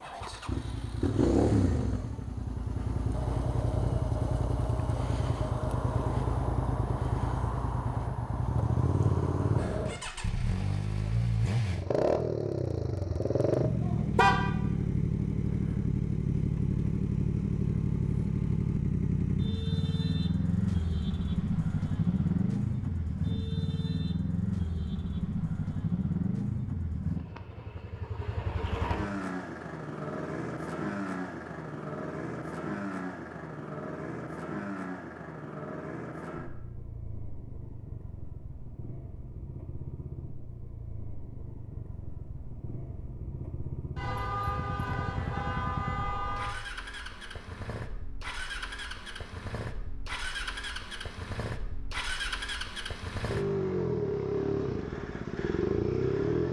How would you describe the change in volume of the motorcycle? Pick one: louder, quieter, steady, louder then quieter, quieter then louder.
quieter then louder.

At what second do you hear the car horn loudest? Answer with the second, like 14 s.
14 s.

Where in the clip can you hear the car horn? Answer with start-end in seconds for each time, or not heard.
13.8-14.4, 44.0-46.5.